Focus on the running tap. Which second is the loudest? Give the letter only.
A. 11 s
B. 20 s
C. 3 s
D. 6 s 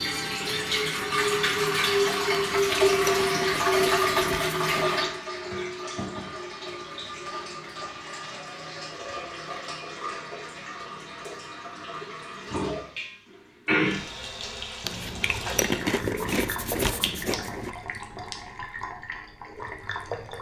C.